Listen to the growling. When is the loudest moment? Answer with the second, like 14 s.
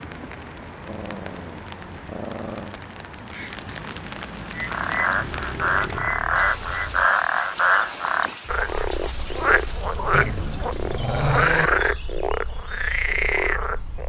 11 s.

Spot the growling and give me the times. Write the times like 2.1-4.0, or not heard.
0.8-2.8, 5.1-7.1, 10.1-11.7.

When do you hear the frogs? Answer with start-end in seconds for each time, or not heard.
4.5-14.0.